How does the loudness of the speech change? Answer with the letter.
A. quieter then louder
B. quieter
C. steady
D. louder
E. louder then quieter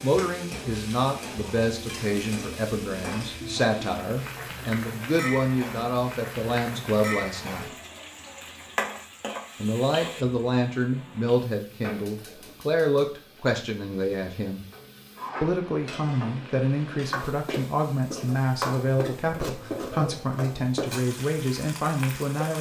C.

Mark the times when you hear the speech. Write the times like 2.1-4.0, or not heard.
0.0-7.8, 9.6-14.7, 15.4-22.5.